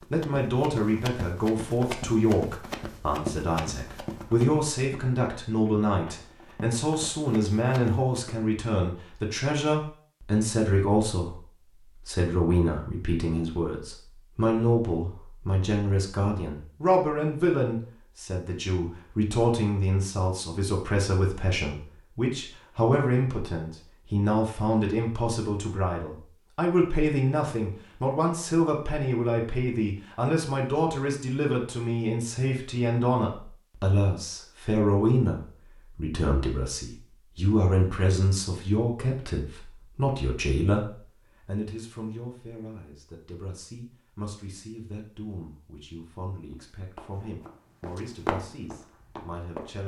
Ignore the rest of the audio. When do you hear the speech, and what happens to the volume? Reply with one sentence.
You can hear the speech from 0.1 to 49.8 s, getting quieter.